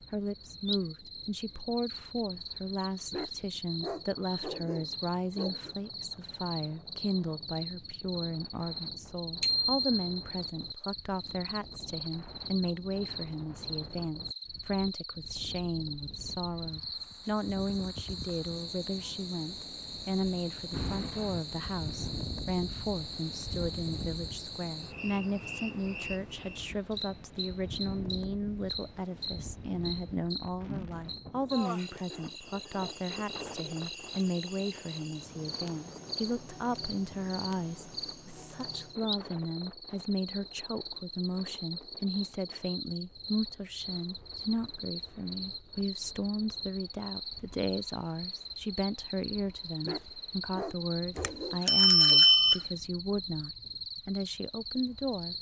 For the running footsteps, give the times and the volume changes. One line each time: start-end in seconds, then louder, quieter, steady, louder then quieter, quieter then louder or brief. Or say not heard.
not heard.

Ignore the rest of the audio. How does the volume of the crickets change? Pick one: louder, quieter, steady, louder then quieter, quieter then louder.
steady.